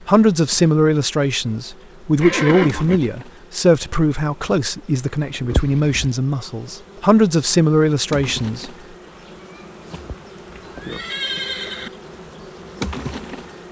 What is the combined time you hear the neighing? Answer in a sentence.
You can hear the neighing for 3 seconds altogether.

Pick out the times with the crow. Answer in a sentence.
The crow can't be heard in this clip.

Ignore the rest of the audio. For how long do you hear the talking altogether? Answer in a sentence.
The talking can be heard for 9 seconds in total.